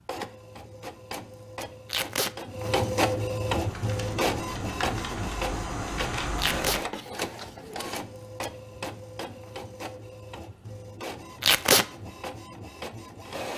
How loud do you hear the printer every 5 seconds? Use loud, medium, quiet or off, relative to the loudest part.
loud, medium, medium.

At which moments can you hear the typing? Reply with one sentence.
You can hear the typing from 3.5 to 6.8 s.